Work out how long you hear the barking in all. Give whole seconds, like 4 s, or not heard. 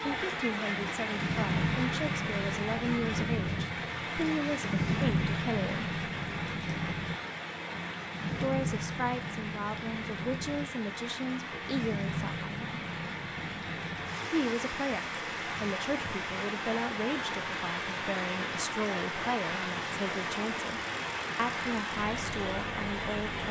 not heard.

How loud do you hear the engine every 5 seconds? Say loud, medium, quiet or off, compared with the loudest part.
loud, loud, medium, medium, medium.